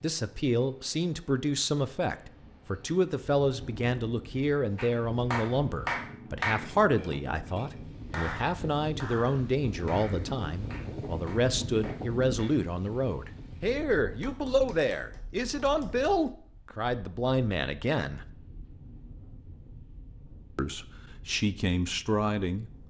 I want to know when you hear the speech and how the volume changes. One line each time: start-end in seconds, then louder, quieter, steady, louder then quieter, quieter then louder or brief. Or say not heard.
0.0-18.2 steady
20.6-22.7 brief.